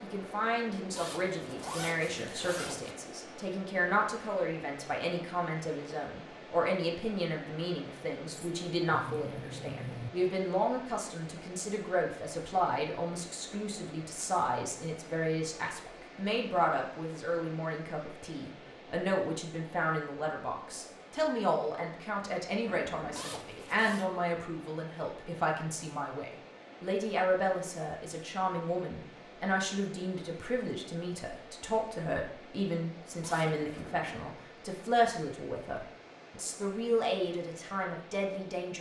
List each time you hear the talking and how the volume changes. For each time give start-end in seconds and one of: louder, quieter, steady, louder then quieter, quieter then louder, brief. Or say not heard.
0.0-38.7 steady.